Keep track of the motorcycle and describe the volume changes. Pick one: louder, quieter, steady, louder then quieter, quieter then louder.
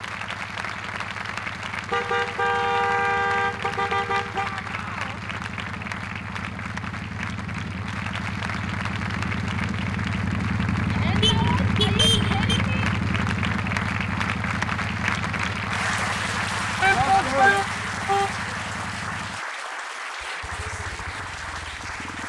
louder then quieter.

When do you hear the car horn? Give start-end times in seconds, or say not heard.
1.9-4.5, 11.2-12.6, 16.9-18.4.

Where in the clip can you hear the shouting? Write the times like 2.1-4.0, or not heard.
4.3-5.2, 10.9-12.9, 16.8-17.6.